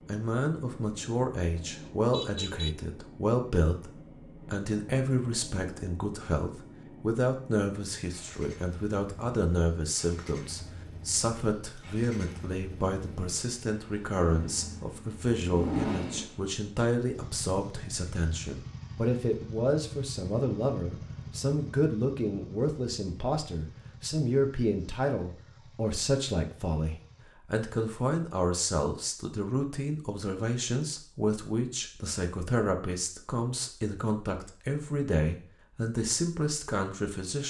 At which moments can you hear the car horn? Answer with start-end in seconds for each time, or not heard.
1.9-2.8.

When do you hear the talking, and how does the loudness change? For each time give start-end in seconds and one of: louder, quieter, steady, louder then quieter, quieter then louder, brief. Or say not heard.
0.1-37.4 steady.